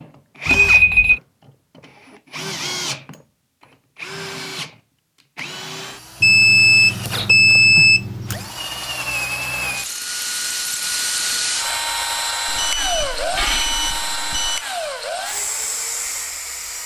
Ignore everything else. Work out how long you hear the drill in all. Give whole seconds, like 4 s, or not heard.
17 s.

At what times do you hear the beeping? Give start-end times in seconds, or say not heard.
0.5-1.2, 6.2-8.5, 12.4-14.7.